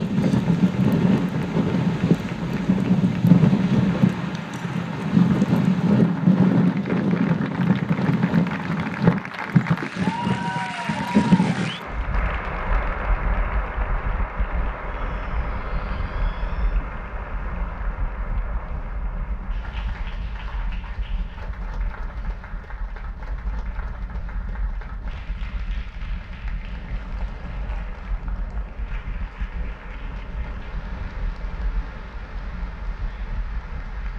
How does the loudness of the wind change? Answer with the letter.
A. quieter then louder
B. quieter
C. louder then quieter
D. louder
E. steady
B.